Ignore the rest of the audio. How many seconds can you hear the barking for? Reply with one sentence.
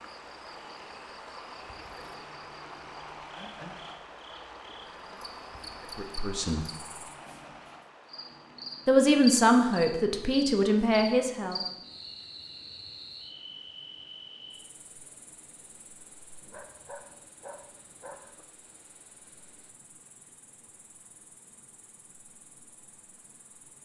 You can hear the barking for 2 seconds altogether.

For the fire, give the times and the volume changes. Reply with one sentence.
The fire can't be heard in this clip.